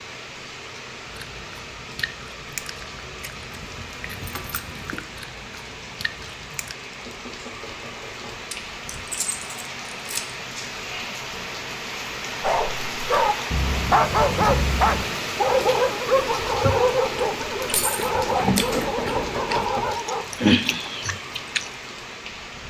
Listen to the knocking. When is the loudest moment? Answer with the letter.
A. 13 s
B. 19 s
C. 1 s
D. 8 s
B.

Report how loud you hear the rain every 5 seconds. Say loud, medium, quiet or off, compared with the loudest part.
medium, medium, loud, loud, medium.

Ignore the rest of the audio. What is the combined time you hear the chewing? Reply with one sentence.
The chewing can be heard for 11 seconds in total.